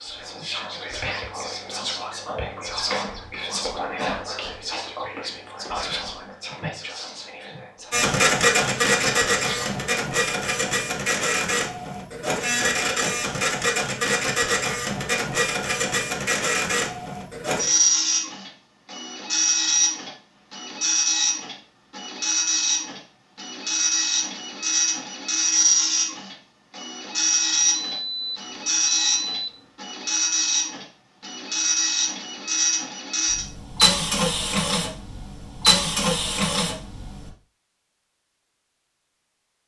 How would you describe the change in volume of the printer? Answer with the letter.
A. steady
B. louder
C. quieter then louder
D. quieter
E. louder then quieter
A.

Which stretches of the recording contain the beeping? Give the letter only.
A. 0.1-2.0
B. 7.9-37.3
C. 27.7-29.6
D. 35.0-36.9
C.